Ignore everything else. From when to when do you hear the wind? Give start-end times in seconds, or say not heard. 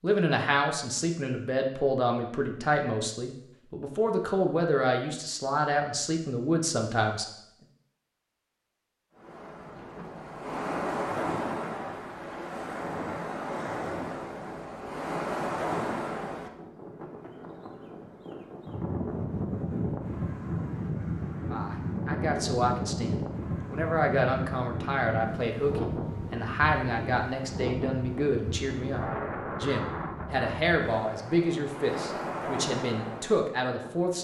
9.2-34.1.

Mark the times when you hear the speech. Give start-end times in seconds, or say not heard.
0.0-7.2, 21.5-34.1.